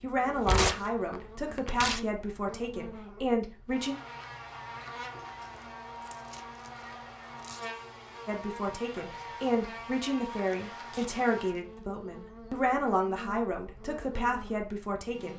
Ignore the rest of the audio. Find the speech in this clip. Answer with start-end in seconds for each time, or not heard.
0.0-4.0, 8.2-15.3.